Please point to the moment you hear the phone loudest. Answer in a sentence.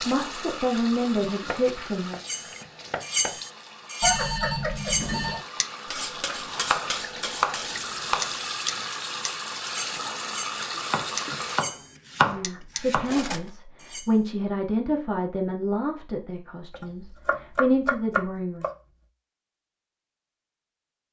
The volume of the phone peaks at 4 seconds.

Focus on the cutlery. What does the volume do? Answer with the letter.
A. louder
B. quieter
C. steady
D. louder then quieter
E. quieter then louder
B.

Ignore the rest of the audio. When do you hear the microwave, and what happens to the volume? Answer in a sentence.
The microwave can't be heard in this clip.